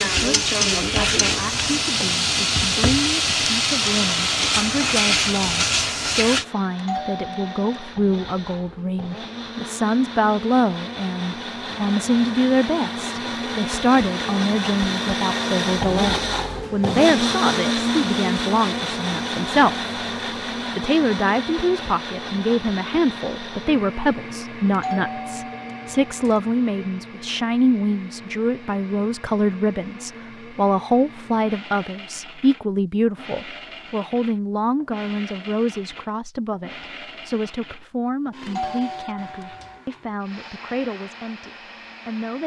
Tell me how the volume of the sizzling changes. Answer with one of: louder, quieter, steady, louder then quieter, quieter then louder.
steady.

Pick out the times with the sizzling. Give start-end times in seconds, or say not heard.
0.0-6.5.